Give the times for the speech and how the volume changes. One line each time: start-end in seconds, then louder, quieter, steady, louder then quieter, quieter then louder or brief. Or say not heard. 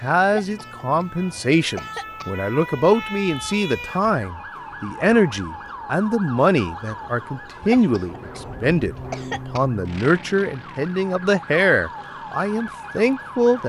0.0-13.6 steady.